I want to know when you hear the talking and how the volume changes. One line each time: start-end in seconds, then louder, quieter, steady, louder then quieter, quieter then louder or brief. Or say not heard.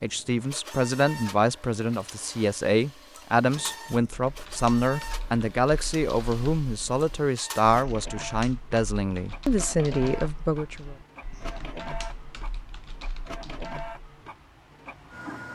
0.0-10.9 steady.